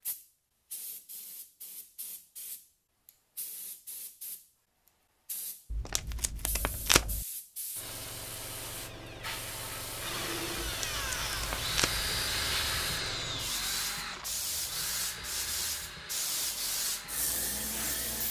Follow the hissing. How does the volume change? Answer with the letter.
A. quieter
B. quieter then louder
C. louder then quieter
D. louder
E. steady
D.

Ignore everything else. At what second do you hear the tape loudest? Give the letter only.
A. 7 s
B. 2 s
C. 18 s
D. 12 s
A.